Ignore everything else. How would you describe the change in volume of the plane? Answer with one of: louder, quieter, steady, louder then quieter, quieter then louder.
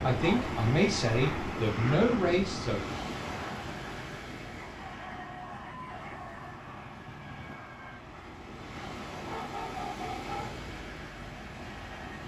quieter.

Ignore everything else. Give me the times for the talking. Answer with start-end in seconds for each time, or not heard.
0.0-2.8.